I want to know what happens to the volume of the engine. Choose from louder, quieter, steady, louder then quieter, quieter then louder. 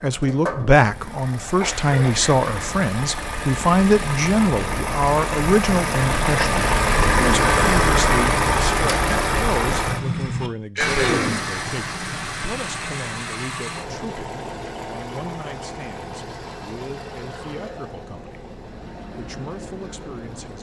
louder then quieter.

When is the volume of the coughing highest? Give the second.
11 s.